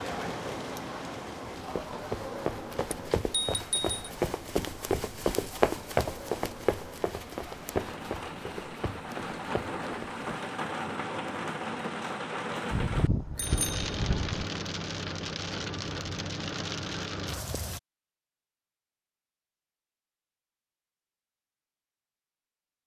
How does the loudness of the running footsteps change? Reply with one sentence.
The loudness of the running footsteps goes up, then down.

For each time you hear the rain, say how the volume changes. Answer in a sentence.
The rain can be heard from 0.0 to 17.8 s, getting quieter then louder.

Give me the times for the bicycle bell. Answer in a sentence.
You can hear the bicycle bell from 2.9 to 4.0 s and from 12.7 to 14.4 s.